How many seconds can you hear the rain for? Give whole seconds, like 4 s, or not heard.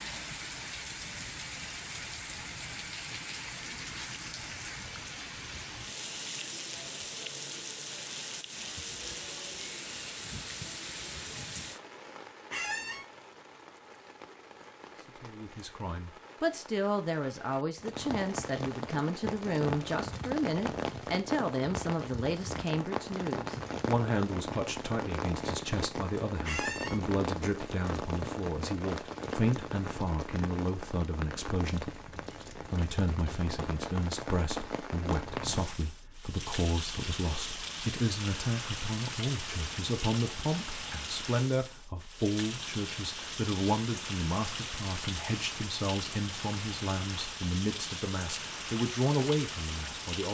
50 s.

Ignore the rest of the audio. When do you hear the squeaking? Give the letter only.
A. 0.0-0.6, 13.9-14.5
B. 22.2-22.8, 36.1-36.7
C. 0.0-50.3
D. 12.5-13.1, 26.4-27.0
D.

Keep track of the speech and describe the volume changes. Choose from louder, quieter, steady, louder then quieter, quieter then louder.
steady.